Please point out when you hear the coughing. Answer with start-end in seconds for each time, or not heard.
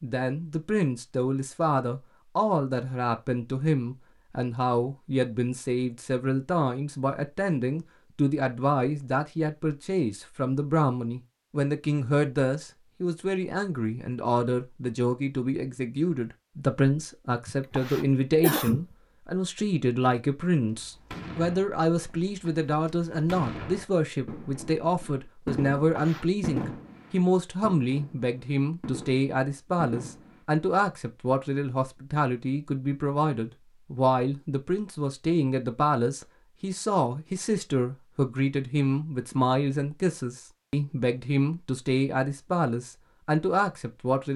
17.4-18.8, 25.8-26.2.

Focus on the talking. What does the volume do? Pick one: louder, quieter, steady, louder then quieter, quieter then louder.
steady.